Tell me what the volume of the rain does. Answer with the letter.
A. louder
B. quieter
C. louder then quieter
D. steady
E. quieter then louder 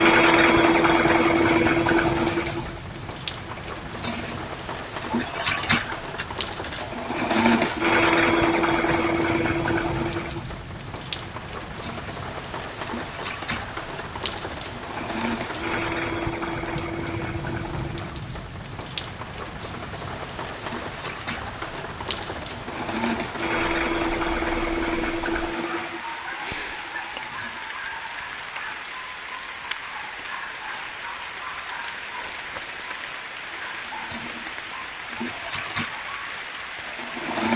D.